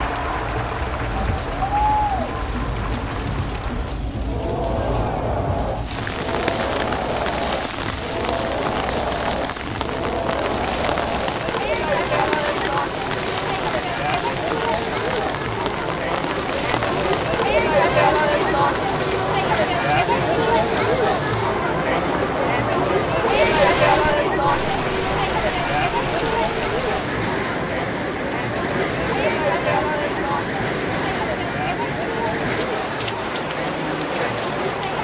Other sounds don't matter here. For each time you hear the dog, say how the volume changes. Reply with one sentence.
You can't hear the dog here.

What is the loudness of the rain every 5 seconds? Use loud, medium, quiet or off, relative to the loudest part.
medium, loud, loud, loud, loud, loud, loud.